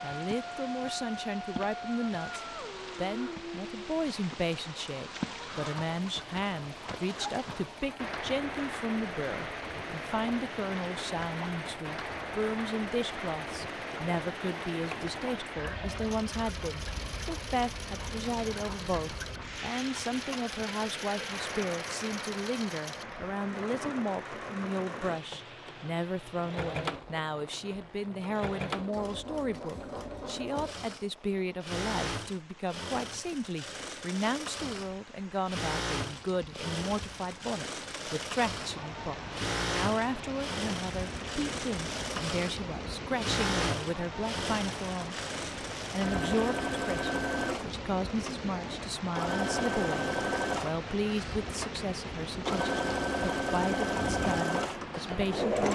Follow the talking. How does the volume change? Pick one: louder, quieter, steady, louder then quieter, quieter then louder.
steady.